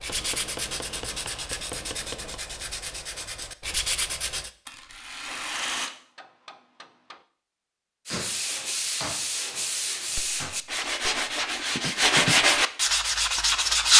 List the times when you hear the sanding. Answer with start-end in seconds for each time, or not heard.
0.0-4.5, 8.1-13.9.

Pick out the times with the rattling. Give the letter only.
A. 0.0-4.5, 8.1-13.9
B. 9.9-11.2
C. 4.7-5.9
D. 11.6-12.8
C.